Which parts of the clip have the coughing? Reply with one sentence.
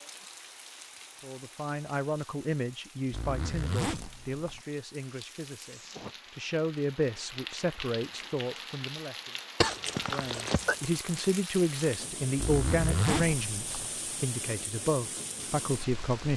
The coughing can be heard from 9.6 to 10.8 s.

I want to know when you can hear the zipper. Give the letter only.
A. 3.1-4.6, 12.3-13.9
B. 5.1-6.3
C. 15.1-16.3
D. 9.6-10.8
A.